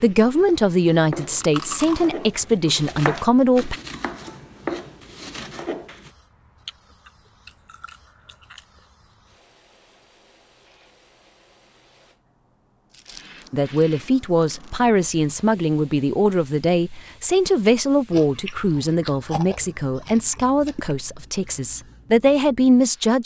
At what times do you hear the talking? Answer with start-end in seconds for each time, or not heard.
0.0-3.8, 13.5-23.2.